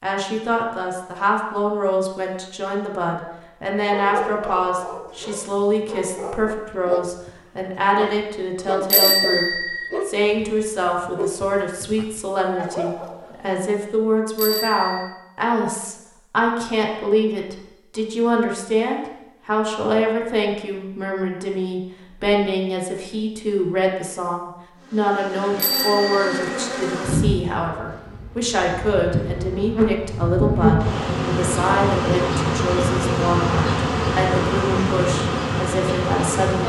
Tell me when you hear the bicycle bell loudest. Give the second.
9 s.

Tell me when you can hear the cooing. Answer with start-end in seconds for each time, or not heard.
not heard.